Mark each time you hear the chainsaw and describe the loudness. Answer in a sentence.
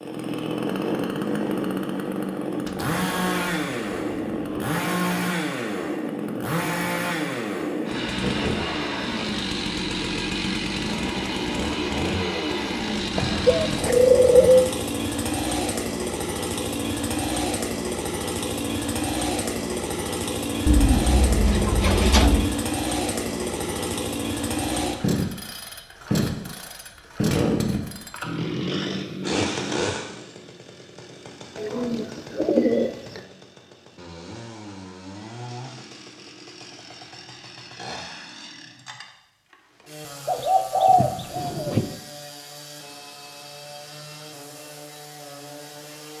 The chainsaw can be heard from 0.0 to 46.1 s, getting quieter.